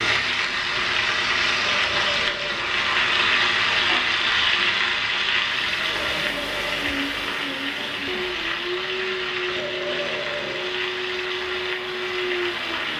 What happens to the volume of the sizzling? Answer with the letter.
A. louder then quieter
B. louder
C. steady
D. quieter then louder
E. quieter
E.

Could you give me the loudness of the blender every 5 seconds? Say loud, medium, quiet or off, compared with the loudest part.
off, loud, loud.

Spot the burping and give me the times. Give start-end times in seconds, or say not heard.
1.6-2.8, 5.8-7.2, 9.4-10.8.